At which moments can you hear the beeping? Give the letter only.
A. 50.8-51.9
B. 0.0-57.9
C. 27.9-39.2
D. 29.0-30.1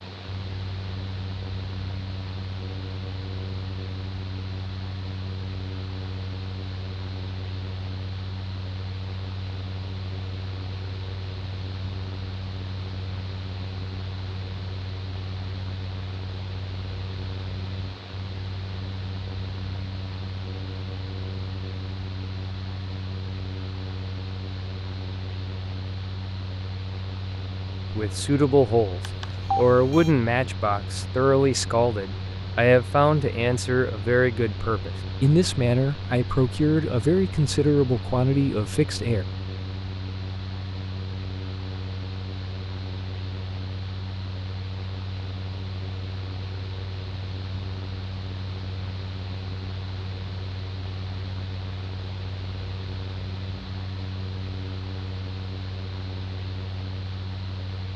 D.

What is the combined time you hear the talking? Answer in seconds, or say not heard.
11 s.